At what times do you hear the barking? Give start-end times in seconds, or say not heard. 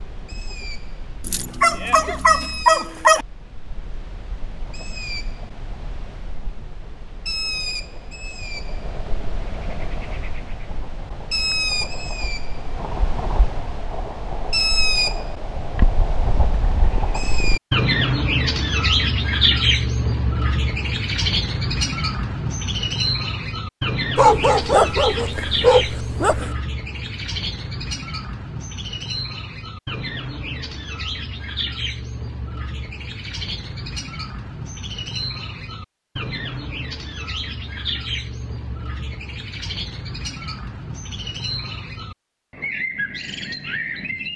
1.2-3.2, 24.1-26.6.